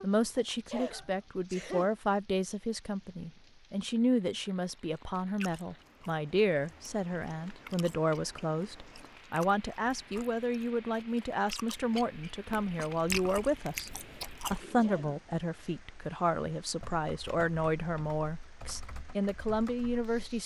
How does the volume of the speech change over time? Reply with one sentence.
The volume of the speech stays about the same.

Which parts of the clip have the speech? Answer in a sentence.
You can hear the speech from 0.0 to 13.9 s and from 14.5 to 20.4 s.